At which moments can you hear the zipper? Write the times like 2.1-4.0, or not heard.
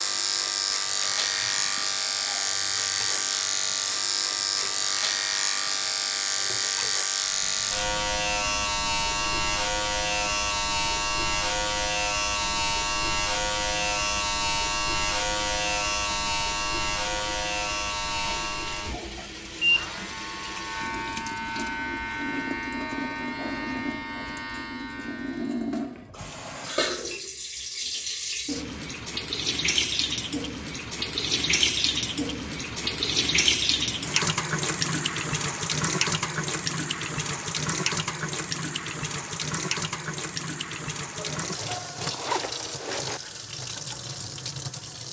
41.1-43.2.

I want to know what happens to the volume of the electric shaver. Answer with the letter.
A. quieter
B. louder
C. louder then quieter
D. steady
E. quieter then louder
A.